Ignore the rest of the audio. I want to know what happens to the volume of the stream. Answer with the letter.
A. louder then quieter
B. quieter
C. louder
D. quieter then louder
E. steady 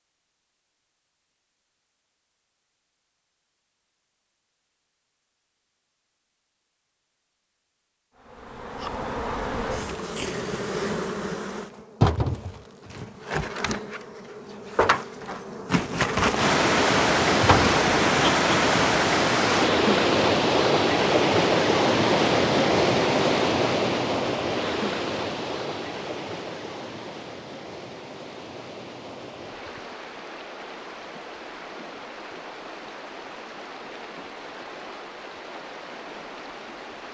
B.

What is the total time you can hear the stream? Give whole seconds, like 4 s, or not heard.
21 s.